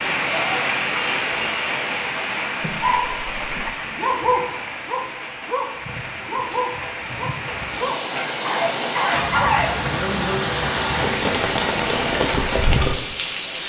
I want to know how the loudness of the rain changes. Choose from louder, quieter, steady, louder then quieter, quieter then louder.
quieter then louder.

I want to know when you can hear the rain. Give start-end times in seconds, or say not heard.
0.0-13.6.